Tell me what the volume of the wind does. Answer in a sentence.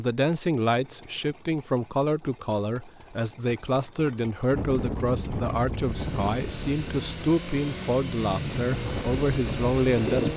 The loudness of the wind goes down, then up.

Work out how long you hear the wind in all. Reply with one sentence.
The wind can be heard for 6 seconds in total.